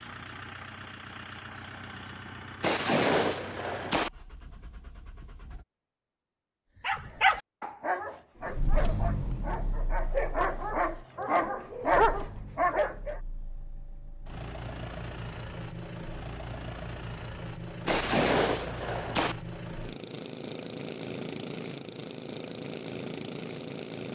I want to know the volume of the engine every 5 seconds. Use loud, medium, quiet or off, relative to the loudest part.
medium, loud, medium, loud, loud.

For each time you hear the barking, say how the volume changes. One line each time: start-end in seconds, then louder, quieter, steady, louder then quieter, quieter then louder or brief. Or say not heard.
6.8-13.2 quieter then louder.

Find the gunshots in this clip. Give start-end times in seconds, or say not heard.
2.6-4.1, 17.9-19.4.